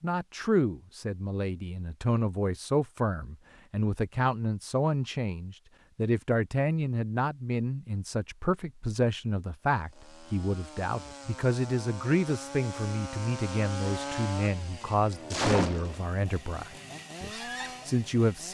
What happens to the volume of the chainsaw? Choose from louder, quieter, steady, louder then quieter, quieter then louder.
louder then quieter.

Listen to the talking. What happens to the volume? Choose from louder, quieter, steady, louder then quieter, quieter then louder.
steady.